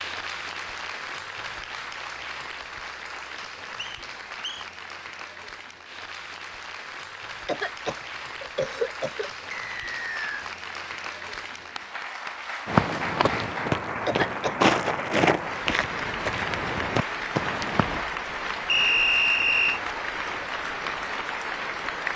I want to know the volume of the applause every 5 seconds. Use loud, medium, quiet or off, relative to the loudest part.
medium, medium, loud, loud, loud.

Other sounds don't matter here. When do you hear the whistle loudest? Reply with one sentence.
The volume of the whistle peaks at 19 seconds.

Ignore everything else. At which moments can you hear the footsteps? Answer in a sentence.
The footsteps can be heard from 12.7 to 18.0 s.